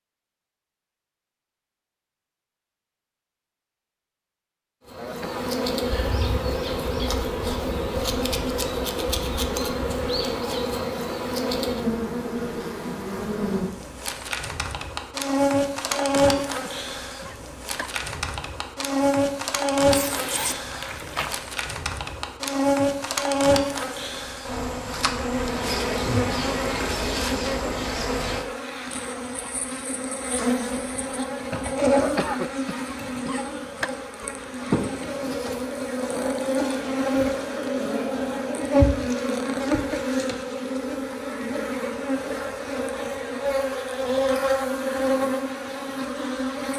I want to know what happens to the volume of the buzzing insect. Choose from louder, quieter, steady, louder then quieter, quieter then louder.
steady.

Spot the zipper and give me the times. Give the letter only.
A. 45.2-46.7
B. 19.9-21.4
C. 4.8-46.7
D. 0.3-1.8
B.